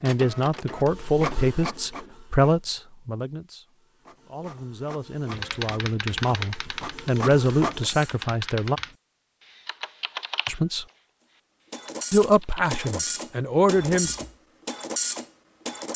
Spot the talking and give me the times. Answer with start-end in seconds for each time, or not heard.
0.0-3.6, 4.2-8.8, 10.4-10.8, 12.1-14.1.